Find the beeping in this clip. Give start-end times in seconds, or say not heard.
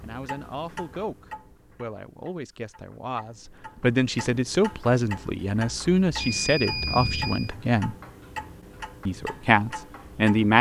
6.2-7.5.